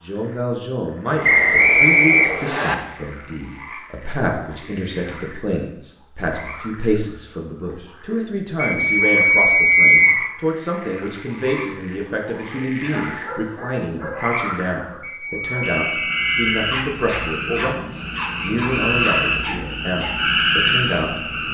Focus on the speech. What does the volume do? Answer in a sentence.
The volume of the speech stays about the same.